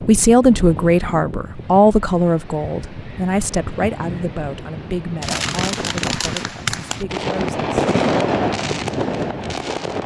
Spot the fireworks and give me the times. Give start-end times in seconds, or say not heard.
5.2-10.0.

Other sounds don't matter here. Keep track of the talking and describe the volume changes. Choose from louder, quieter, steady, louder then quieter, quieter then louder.
quieter.